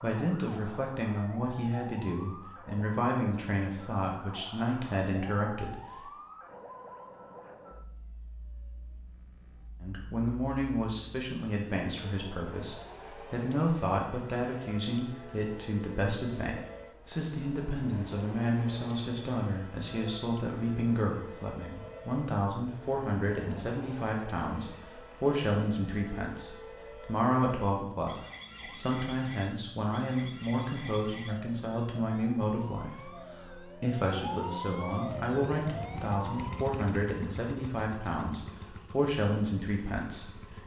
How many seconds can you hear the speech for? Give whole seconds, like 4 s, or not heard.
37 s.